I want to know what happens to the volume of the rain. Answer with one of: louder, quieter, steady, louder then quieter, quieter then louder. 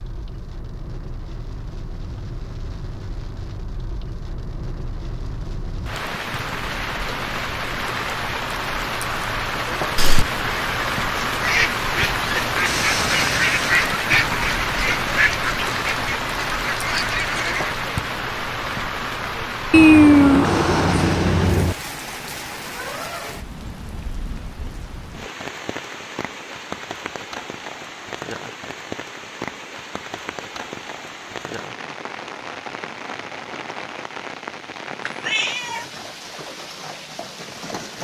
louder then quieter.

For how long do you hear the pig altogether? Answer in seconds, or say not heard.
not heard.